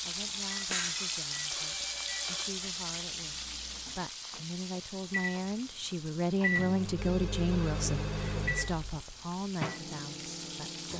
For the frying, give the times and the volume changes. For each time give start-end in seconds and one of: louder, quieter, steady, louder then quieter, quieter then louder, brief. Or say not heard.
0.0-10.9 quieter then louder.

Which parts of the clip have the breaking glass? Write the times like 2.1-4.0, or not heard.
0.7-1.2.